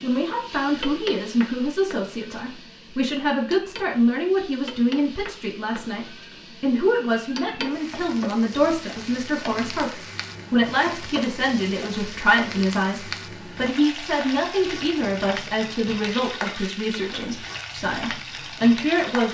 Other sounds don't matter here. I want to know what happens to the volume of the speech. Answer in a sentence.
The volume of the speech stays about the same.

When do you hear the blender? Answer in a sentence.
You can't hear the blender here.